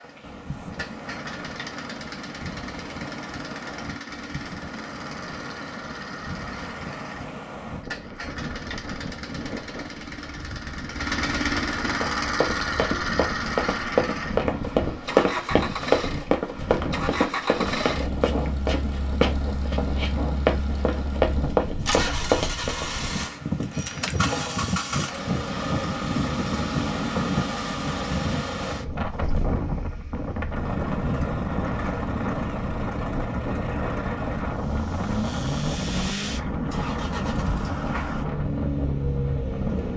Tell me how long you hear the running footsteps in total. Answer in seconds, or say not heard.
11 s.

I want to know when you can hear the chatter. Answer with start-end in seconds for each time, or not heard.
not heard.